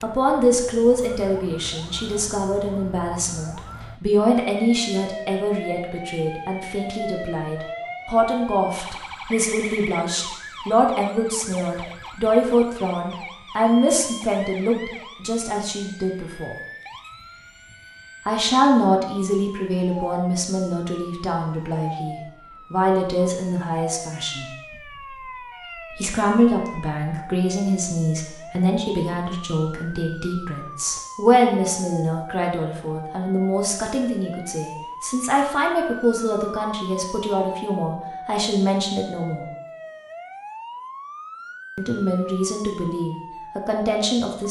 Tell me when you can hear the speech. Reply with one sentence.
The speech can be heard from 0.0 to 16.6 s, from 18.2 to 24.4 s, from 25.9 to 39.5 s and from 41.8 to 44.4 s.